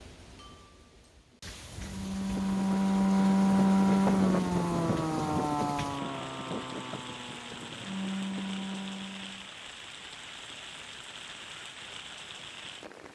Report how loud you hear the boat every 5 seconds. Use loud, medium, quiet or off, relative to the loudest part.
loud, medium, off.